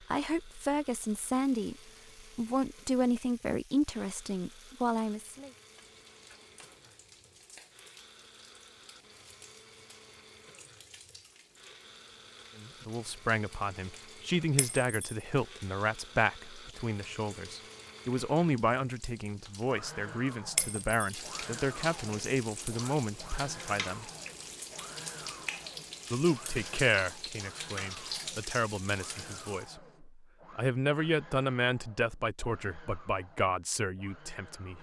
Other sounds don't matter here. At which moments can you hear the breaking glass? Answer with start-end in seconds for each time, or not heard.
14.6-15.2, 20.6-21.0.